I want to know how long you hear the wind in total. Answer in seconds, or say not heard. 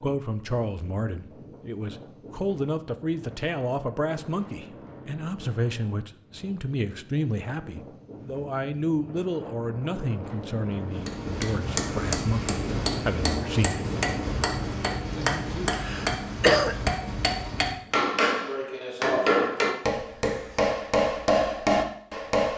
18 s.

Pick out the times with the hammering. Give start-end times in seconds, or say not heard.
10.9-22.5.